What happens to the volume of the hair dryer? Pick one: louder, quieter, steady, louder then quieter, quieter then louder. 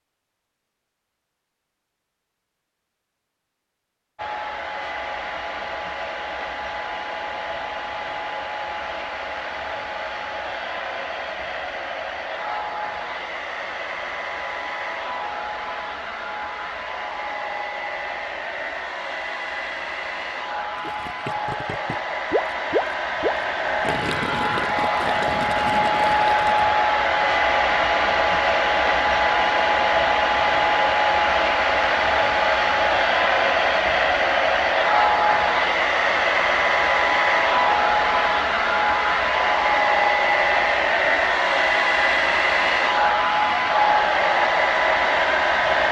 louder.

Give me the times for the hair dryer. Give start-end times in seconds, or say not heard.
4.2-45.8.